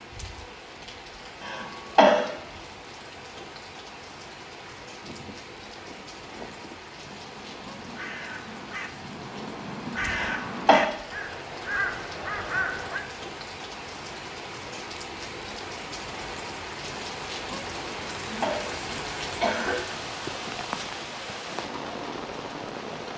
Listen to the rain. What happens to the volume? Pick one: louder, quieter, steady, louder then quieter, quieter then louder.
louder.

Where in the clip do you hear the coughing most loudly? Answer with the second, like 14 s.
2 s.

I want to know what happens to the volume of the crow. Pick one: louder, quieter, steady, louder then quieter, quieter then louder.
louder.